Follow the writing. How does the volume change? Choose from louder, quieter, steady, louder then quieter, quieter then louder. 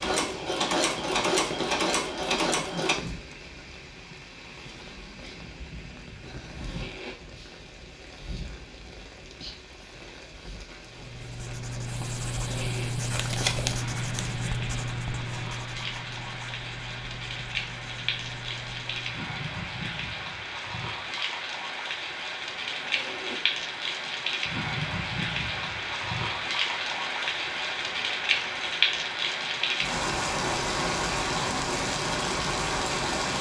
quieter.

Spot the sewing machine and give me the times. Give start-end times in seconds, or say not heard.
0.0-3.0.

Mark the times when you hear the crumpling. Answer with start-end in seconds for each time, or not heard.
13.1-14.5.